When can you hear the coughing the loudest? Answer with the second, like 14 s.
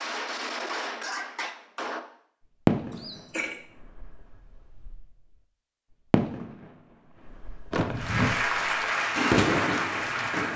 8 s.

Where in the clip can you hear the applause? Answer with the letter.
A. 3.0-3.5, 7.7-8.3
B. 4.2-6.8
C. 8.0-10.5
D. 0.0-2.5
C.